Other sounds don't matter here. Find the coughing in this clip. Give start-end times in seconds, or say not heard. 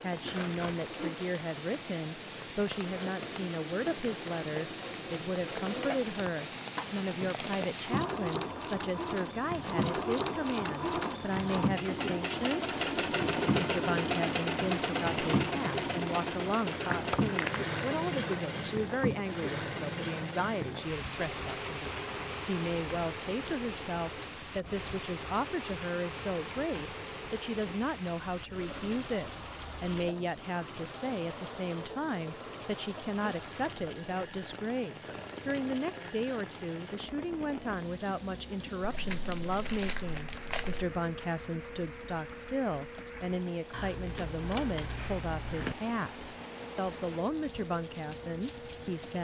not heard.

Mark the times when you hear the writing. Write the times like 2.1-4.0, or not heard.
not heard.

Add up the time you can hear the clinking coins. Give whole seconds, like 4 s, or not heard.
2 s.